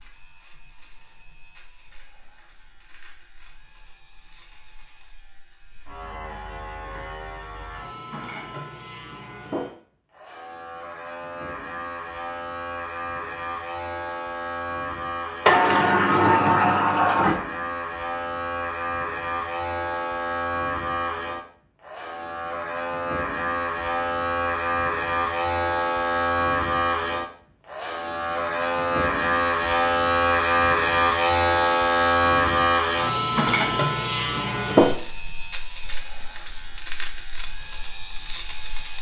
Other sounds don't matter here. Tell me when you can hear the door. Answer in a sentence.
The door can be heard from 15.4 to 17.4 s.